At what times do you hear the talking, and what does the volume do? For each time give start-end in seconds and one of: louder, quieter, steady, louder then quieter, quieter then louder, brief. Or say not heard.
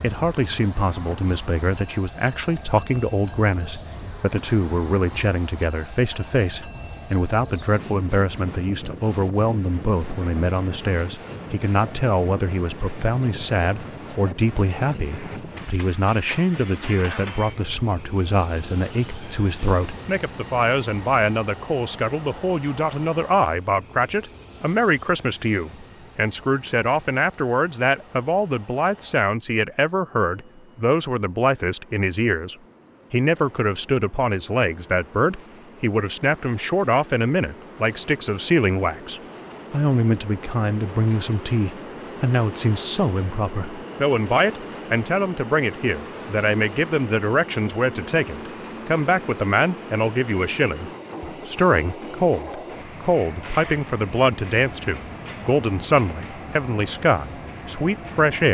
0.0-58.4 steady.